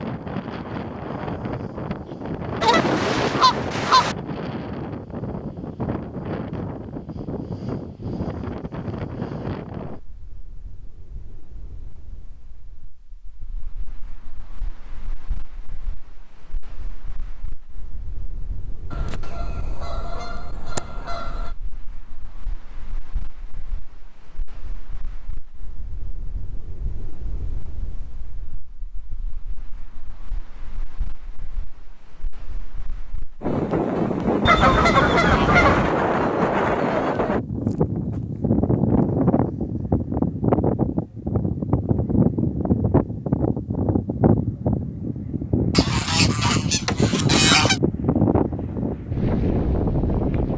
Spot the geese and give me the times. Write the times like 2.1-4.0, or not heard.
2.6-4.2, 18.9-21.5, 34.5-36.0, 45.7-47.8.